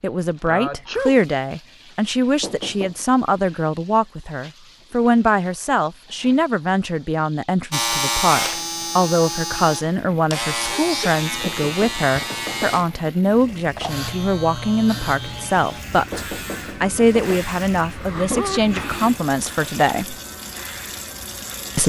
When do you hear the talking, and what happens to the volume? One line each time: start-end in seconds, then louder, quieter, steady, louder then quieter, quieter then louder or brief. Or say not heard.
0.0-20.1 steady.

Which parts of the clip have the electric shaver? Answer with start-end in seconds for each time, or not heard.
7.7-21.8.